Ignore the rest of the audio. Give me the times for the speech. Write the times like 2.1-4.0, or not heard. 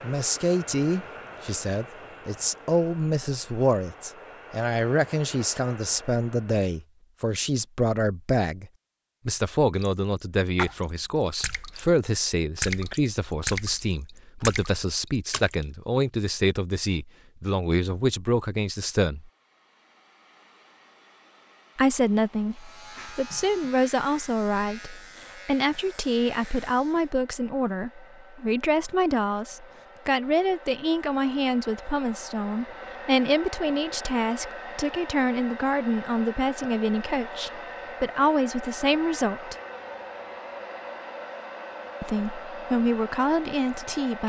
0.0-19.3, 21.8-39.5, 42.0-44.2.